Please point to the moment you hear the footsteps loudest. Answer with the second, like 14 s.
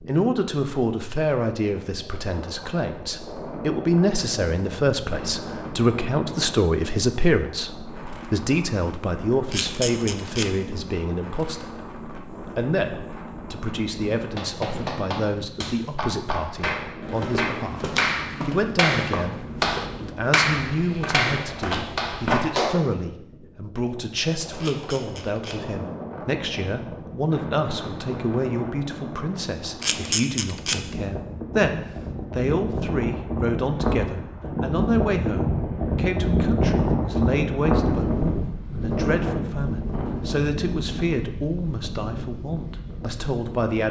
22 s.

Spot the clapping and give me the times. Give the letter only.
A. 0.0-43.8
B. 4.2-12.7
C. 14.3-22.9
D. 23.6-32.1
C.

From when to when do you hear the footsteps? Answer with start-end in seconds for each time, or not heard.
17.1-22.5.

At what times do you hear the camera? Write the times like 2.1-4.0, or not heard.
9.5-10.5, 24.6-25.6, 29.8-30.8.